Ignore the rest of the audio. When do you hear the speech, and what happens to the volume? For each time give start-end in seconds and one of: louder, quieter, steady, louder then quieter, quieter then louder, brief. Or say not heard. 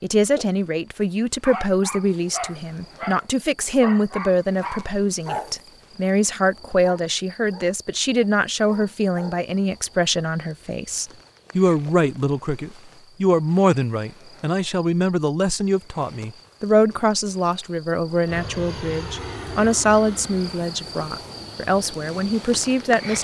0.0-23.1 steady.